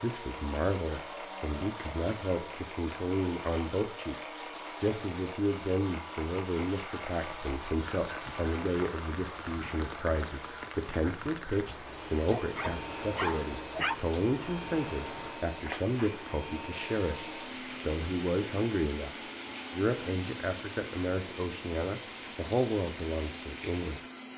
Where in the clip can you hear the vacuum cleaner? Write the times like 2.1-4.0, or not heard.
0.0-24.3.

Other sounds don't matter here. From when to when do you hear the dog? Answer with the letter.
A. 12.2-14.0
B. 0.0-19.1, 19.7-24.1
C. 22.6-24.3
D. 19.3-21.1
A.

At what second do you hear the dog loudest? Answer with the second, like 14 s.
14 s.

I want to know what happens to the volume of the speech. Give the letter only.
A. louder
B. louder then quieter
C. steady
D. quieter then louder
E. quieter
C.